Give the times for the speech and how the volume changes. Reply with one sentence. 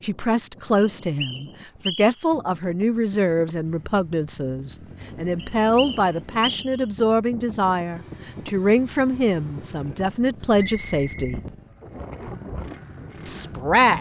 The speech can be heard from 0.0 to 11.4 s, at a steady volume; and briefly from 13.2 to 13.9 s.